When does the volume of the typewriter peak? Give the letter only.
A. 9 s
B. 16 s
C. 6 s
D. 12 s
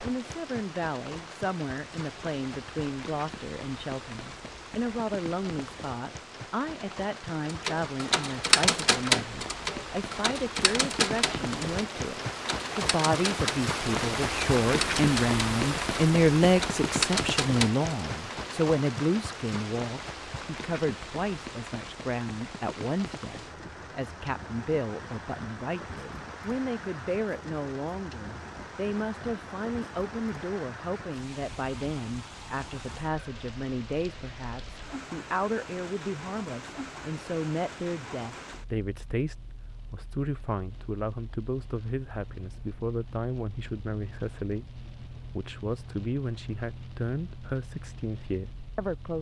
A.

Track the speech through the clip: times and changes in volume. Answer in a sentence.
The speech can be heard from 0.0 to 49.1 s, getting louder then quieter.